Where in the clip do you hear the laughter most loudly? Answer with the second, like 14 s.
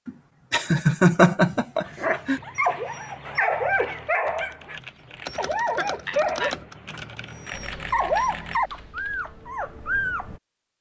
1 s.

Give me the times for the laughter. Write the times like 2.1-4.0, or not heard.
0.1-2.4, 5.8-6.5.